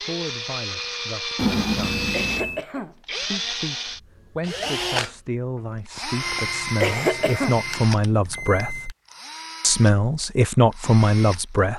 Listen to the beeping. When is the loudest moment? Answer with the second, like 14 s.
2 s.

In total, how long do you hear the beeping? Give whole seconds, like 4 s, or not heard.
4 s.